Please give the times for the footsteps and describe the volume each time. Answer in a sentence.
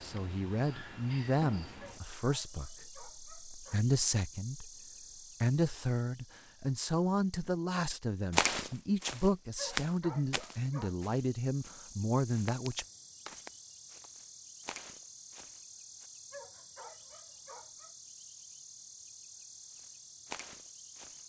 You can hear the footsteps from 8.3 to 16.1 s, getting quieter; and briefly from 19.8 to 21.2 s.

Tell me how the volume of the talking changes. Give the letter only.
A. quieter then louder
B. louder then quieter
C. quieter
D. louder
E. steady
E.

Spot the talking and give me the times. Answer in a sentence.
You can hear the talking from 0.0 to 4.7 s and from 5.4 to 12.8 s.